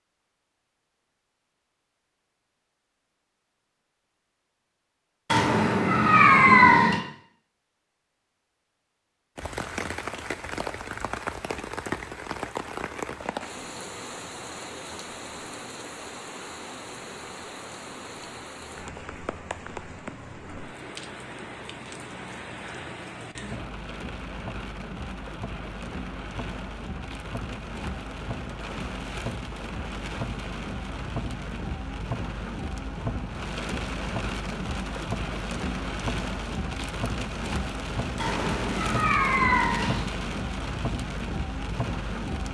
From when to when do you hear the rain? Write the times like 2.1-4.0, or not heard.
9.3-42.4.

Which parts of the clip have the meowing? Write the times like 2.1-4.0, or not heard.
5.3-7.0, 38.1-40.0.